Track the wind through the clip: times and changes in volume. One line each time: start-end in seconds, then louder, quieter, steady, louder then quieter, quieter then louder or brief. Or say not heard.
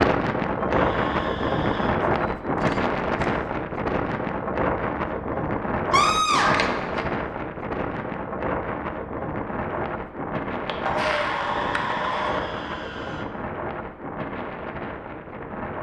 0.0-15.7 quieter.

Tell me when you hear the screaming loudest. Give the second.
6 s.